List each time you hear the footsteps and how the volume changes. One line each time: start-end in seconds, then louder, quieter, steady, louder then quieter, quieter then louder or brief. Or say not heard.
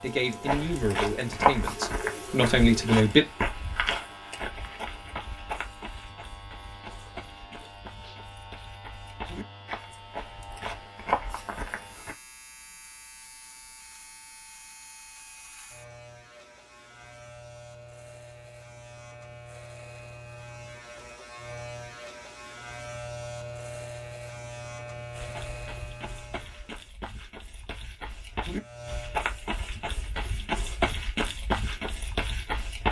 0.4-12.2 quieter then louder
25.1-32.8 louder.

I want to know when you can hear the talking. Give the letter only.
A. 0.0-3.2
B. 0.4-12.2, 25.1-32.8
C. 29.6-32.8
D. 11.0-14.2
A.